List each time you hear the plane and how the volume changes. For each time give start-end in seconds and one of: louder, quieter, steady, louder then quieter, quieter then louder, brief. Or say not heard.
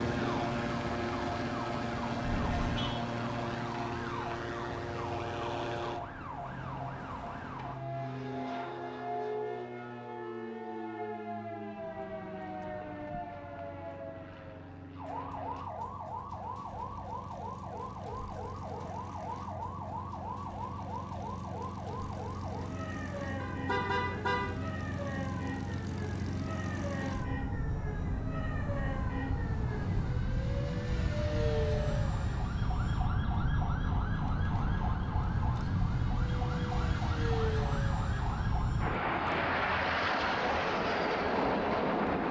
0.0-42.2 quieter then louder.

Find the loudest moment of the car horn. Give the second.
24 s.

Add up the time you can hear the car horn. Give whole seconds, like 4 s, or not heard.
2 s.